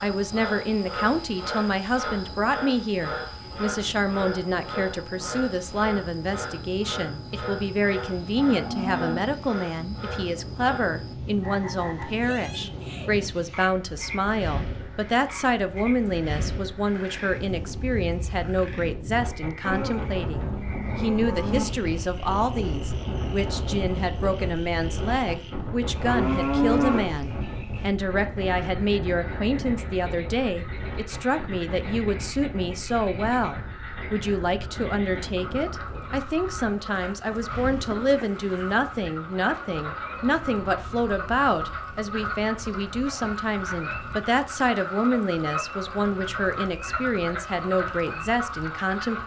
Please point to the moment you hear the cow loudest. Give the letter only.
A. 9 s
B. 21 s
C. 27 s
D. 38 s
C.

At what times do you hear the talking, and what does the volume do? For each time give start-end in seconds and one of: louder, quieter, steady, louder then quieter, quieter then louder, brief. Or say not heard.
0.0-49.2 steady.